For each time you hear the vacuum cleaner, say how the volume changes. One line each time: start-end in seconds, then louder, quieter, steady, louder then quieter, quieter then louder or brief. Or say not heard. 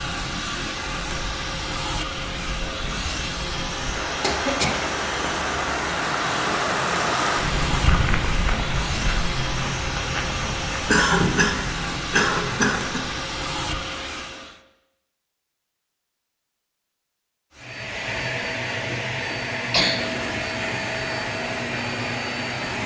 0.0-14.6 steady
17.6-22.8 steady.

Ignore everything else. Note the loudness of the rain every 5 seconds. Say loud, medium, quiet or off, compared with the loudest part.
medium, loud, medium, off, off.